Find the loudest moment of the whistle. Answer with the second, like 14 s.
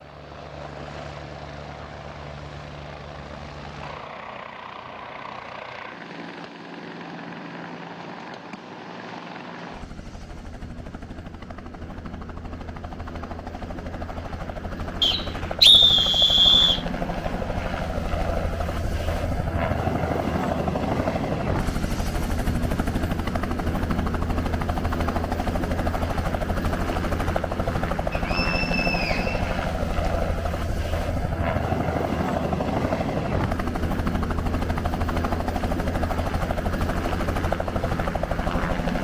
16 s.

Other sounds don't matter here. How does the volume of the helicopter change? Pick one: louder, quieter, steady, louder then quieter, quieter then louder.
louder.